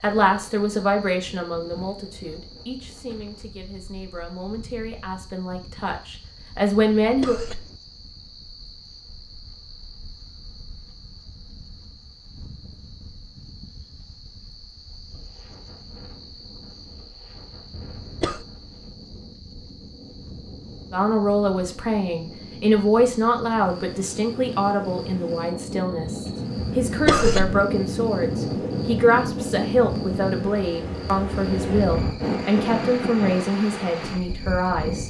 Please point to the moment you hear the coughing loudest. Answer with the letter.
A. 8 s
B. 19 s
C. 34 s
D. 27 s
D.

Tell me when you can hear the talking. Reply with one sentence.
You can hear the talking from 0.0 to 7.4 s and from 20.9 to 35.0 s.